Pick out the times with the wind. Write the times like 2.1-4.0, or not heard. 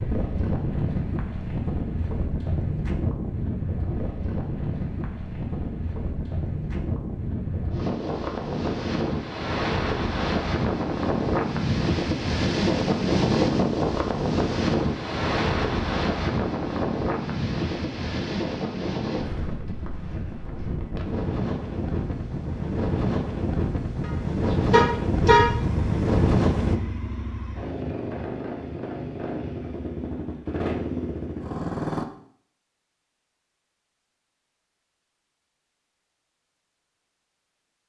0.0-26.8.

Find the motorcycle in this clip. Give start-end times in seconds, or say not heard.
25.4-32.0.